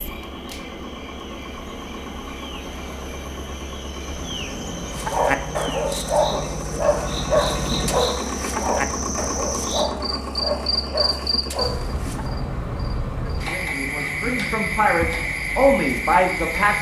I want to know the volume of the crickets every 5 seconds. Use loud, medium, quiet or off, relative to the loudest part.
medium, medium, loud, loud.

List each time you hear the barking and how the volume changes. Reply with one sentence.
The barking can be heard from 5.0 to 12.4 s, getting quieter.